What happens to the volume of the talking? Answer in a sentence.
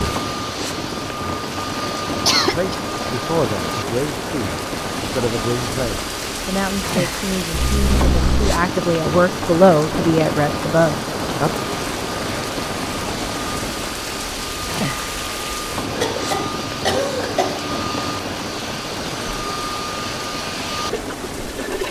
The loudness of the talking goes up.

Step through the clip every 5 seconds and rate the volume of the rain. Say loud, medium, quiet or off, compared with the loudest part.
loud, loud, loud, loud, medium.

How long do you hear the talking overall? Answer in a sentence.
The talking can be heard for 9 seconds in total.